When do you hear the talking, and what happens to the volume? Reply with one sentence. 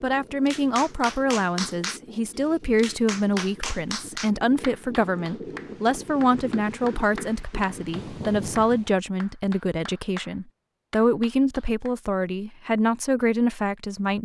You can hear the talking from 0.0 to 14.2 s, at a steady volume.